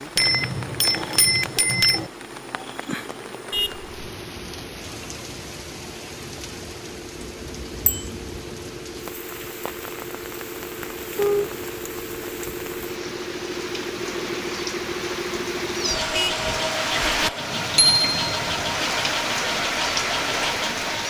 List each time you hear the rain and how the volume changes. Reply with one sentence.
The rain can be heard from 0.0 to 21.0 s, getting louder.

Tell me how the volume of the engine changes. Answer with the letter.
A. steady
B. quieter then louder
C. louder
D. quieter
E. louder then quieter
C.